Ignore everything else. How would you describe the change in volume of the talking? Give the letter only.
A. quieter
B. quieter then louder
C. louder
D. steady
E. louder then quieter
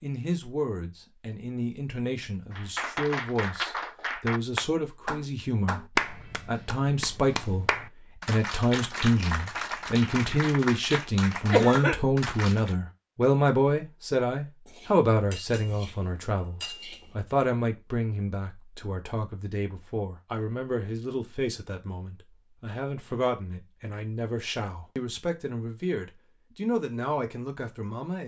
E.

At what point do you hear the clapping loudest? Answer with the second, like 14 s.
6 s.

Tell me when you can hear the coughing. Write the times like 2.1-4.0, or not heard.
11.4-11.9.